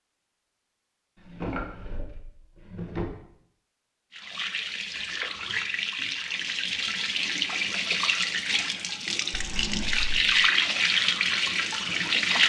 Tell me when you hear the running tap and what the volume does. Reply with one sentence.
You can hear the running tap from 4.1 to 12.4 s, getting louder.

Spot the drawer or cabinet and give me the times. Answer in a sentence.
The drawer or cabinet can be heard from 1.1 to 3.0 s and from 9.3 to 10.2 s.